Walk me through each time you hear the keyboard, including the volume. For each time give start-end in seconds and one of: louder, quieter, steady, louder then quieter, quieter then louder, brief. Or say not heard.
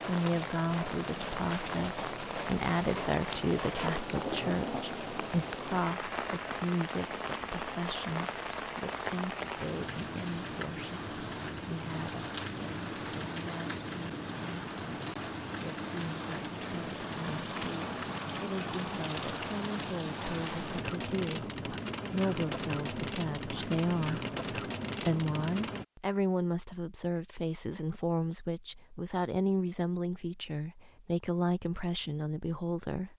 not heard.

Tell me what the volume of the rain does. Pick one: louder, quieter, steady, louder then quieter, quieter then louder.
steady.